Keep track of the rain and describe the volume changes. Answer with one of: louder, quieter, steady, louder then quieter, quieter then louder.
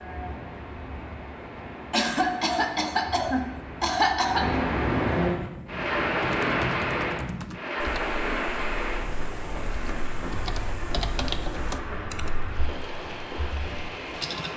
louder then quieter.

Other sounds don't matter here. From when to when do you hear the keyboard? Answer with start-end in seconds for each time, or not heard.
5.3-14.5.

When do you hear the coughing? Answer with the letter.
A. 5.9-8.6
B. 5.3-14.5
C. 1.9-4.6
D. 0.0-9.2
C.